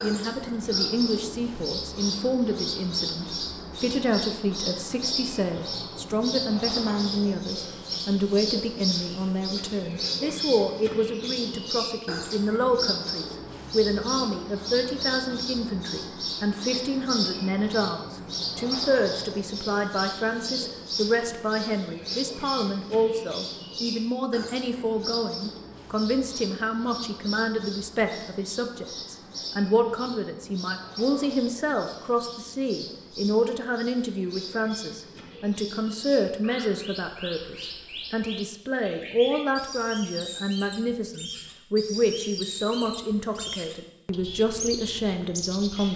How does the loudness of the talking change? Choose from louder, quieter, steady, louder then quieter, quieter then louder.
steady.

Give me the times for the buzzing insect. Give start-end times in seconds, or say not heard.
not heard.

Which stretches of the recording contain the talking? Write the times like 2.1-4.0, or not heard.
0.0-45.9.